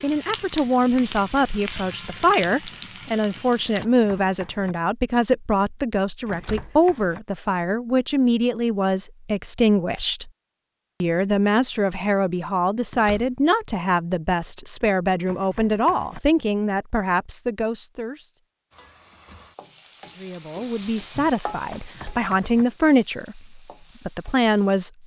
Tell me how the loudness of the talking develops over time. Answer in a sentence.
The loudness of the talking stays about the same.